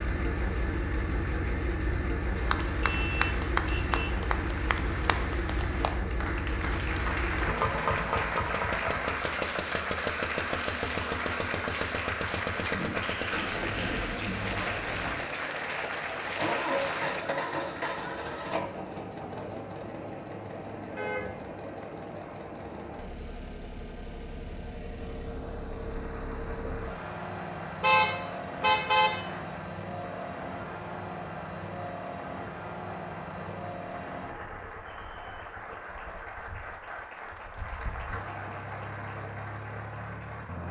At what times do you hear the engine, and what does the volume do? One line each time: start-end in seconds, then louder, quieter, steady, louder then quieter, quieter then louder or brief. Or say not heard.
0.0-40.6 quieter.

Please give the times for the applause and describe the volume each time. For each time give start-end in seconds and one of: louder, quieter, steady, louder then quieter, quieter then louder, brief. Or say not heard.
2.4-17.2 steady
25.6-40.6 steady.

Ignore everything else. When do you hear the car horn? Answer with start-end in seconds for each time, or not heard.
2.8-4.2, 20.9-21.5, 27.8-29.3.